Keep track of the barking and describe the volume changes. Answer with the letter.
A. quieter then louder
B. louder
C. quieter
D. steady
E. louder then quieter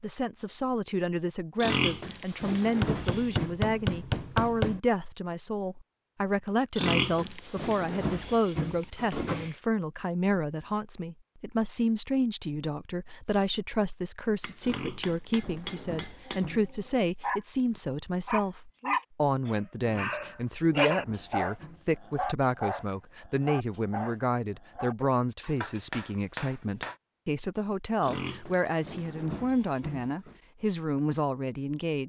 E.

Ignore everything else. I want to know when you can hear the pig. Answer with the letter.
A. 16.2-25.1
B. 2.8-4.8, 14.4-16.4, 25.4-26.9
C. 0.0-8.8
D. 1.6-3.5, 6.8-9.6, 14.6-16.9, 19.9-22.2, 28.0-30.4
D.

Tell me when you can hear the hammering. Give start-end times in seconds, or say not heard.
2.8-4.8, 14.4-16.4, 25.4-26.9.